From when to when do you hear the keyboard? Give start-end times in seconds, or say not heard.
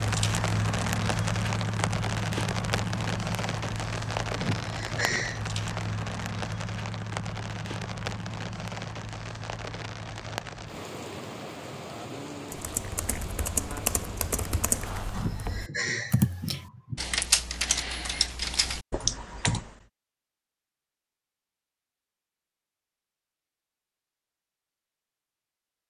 12.5-19.8.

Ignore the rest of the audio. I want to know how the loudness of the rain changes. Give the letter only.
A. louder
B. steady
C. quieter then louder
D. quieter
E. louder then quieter
D.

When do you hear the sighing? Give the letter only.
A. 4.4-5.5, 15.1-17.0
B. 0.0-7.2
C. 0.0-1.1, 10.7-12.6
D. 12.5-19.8
A.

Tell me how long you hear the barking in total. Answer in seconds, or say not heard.
not heard.